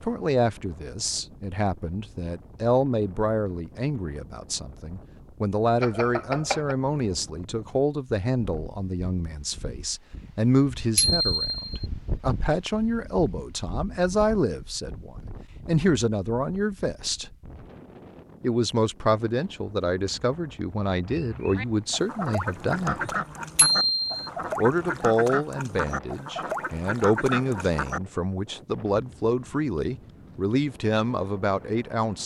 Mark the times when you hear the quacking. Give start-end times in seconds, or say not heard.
21.1-28.0.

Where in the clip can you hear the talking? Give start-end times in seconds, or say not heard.
0.0-17.4, 18.4-23.1, 24.6-32.2.